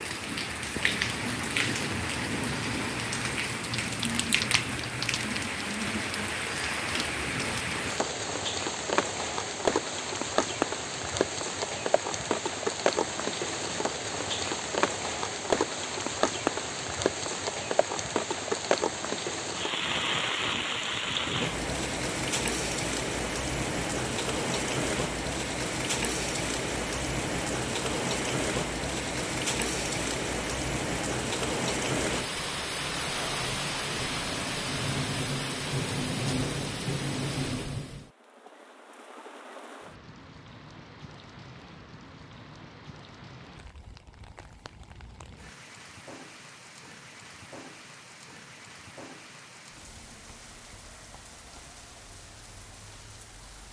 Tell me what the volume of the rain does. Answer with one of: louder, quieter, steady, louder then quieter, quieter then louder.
quieter.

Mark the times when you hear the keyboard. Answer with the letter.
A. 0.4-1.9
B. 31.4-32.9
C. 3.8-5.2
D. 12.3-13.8
C.